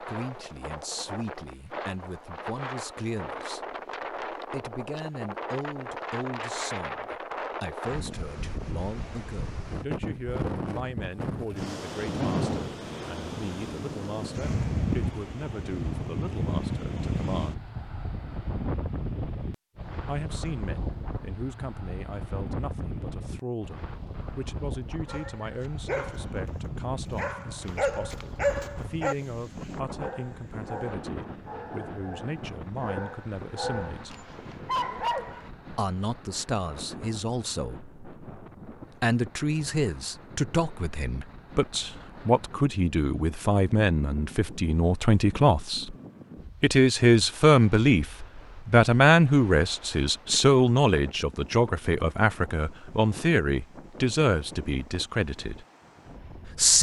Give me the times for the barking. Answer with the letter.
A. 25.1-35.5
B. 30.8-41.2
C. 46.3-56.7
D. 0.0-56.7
A.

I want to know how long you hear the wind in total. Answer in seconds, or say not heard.
57 s.